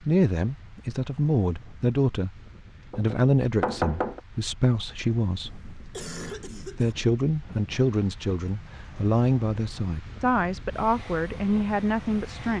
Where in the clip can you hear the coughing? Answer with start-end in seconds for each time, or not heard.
5.5-7.0.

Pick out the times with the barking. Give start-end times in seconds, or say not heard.
not heard.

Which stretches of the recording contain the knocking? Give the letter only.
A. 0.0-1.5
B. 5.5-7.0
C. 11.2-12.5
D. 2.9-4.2
D.